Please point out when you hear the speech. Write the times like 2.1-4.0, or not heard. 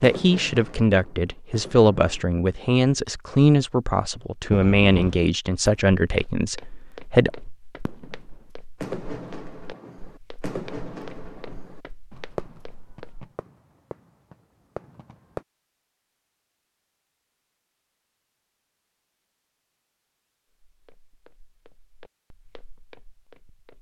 0.0-7.3.